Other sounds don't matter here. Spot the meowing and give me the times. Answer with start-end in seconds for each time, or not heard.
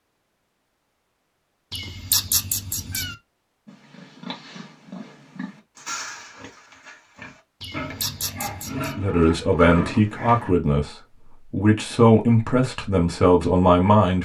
1.7-3.1, 7.6-8.9.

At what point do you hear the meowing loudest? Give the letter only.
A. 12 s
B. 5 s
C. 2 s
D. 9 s
C.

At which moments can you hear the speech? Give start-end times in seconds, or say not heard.
8.7-14.2.